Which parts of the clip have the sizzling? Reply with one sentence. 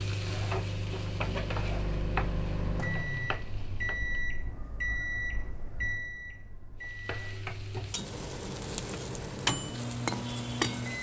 You can hear the sizzling from 0.0 to 4.2 s and from 6.8 to 10.9 s.